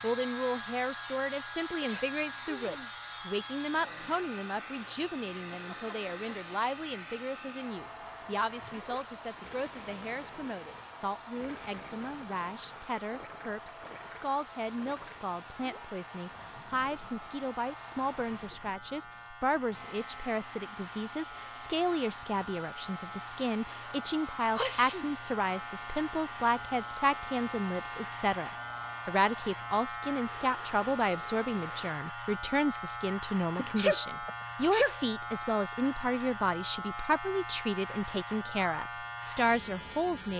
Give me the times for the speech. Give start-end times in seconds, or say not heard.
0.0-40.3.